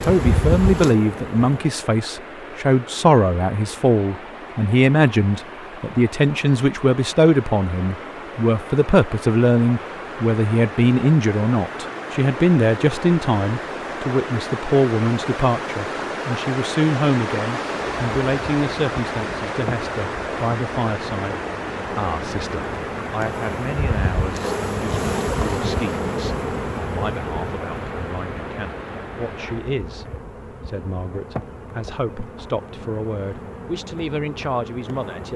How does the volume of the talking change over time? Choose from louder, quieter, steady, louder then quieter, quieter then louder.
quieter.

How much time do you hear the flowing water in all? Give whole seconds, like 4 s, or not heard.
30 s.